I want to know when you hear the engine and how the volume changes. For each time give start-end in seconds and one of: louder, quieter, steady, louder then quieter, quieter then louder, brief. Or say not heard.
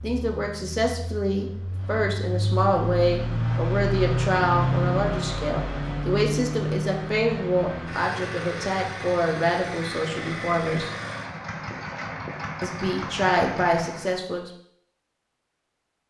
0.0-14.2 louder then quieter.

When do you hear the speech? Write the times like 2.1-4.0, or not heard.
0.0-10.9, 12.6-14.5.